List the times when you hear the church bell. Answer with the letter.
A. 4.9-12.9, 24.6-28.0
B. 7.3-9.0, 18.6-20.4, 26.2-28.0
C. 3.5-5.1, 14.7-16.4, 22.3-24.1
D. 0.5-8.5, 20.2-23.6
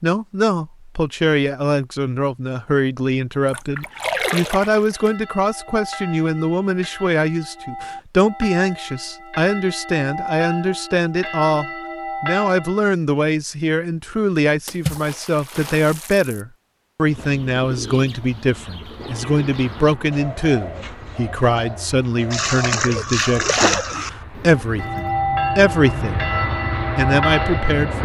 A.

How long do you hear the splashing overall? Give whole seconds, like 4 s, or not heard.
5 s.